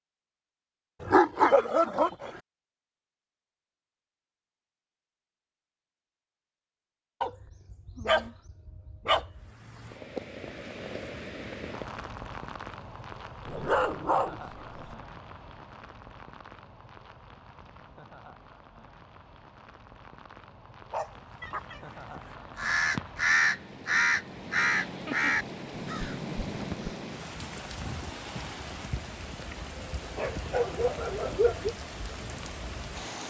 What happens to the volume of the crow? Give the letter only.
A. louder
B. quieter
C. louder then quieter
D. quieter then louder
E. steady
C.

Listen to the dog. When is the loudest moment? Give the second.
1 s.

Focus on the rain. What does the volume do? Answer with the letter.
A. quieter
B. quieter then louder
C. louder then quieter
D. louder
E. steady
B.